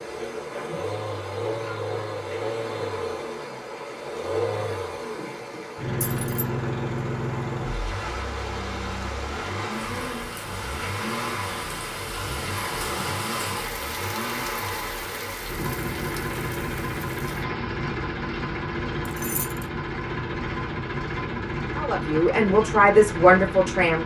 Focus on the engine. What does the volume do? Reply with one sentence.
The loudness of the engine stays about the same.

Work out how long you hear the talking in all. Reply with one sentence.
You can hear the talking for 2 seconds altogether.